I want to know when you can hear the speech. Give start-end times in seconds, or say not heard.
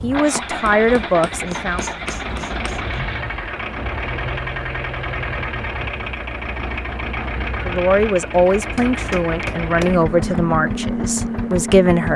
0.0-1.9, 7.7-12.1.